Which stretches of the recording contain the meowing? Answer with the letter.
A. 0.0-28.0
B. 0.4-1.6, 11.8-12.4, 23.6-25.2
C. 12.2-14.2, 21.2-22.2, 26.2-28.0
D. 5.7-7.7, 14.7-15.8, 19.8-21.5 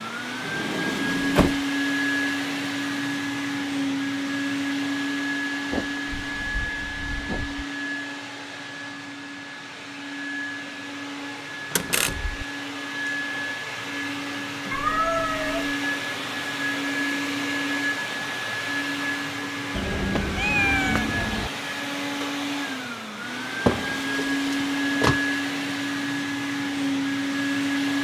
D.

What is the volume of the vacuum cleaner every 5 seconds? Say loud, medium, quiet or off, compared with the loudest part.
loud, medium, medium, loud, loud, loud.